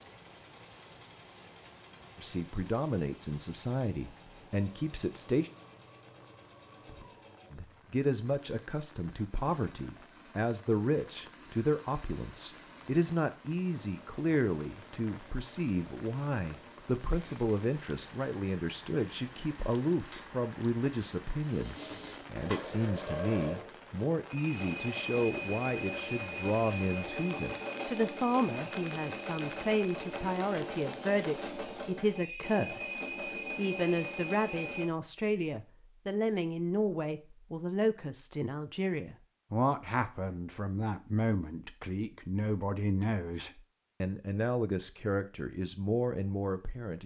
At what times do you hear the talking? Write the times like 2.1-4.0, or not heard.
2.1-5.5, 7.5-47.0.